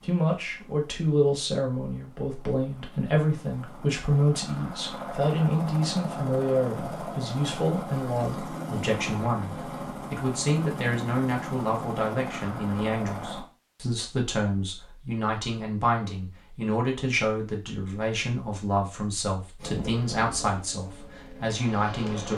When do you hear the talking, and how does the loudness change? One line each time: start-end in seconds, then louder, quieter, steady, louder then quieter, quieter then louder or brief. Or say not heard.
0.0-22.3 steady.